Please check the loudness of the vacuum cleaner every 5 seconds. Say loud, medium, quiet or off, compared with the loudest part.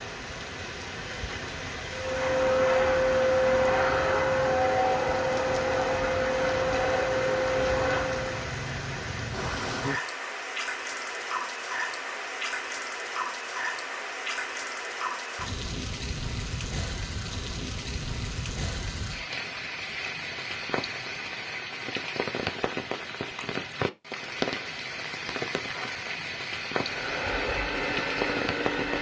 loud, loud, off, off, off, medium.